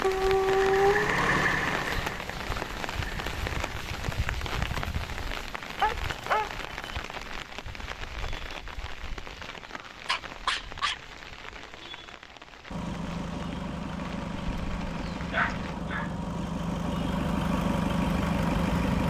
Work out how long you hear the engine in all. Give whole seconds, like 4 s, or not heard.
10 s.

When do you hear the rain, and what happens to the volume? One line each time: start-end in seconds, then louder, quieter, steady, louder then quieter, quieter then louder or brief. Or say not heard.
0.0-15.8 quieter.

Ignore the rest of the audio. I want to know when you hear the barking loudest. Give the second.
1 s.